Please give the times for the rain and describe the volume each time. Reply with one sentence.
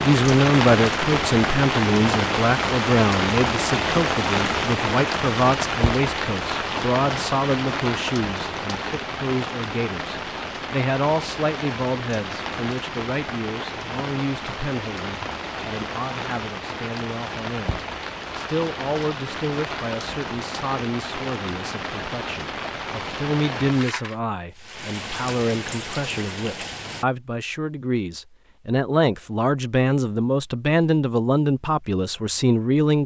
The rain can be heard from 0.0 to 27.1 s, getting quieter.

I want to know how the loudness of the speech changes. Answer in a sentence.
The loudness of the speech goes down, then up.